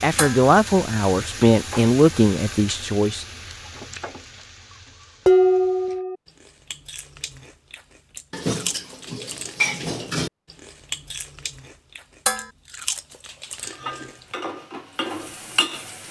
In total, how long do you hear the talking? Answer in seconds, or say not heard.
3 s.